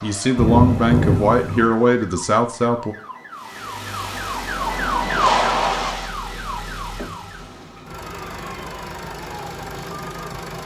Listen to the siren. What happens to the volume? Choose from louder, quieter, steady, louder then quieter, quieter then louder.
louder then quieter.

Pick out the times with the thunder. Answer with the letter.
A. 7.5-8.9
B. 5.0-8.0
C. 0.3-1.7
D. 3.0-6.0
C.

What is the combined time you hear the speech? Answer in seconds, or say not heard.
3 s.